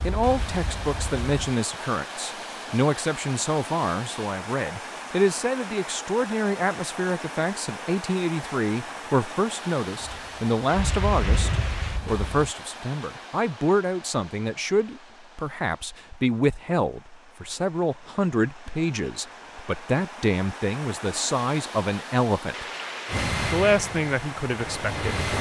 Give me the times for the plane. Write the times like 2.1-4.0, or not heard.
0.0-1.3, 9.9-12.5, 23.1-25.3.